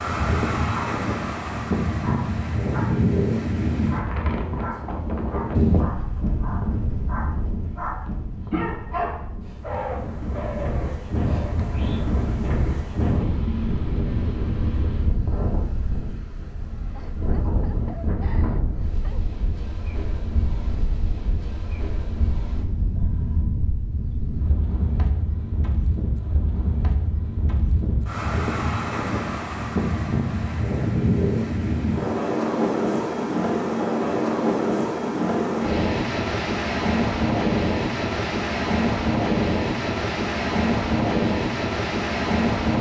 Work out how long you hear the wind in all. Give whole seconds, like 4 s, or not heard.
43 s.